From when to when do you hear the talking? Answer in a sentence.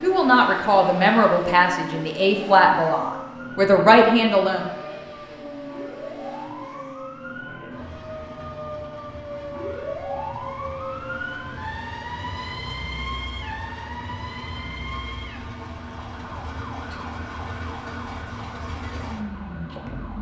The talking can be heard from 0.0 to 4.7 s.